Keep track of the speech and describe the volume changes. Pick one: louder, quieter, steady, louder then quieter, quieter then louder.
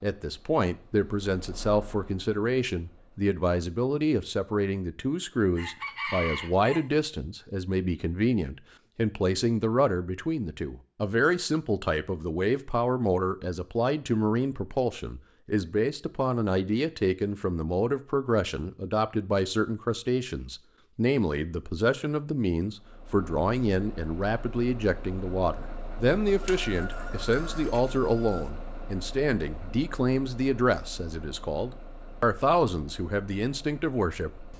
steady.